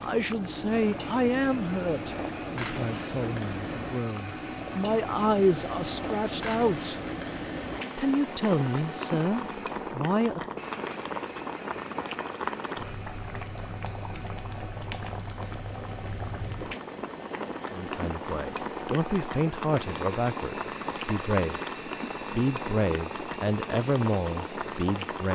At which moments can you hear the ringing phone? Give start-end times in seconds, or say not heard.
not heard.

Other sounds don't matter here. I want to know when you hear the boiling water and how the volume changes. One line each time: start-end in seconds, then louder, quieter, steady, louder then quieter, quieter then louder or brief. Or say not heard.
0.0-25.3 steady.